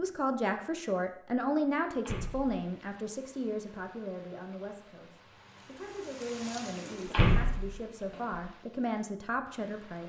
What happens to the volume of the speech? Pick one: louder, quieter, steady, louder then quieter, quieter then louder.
quieter then louder.